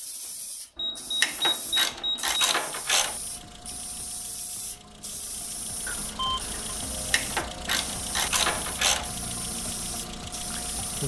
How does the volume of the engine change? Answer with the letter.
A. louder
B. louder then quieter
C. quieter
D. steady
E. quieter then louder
A.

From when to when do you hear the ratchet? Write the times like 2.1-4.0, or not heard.
1.2-3.2, 7.1-9.1.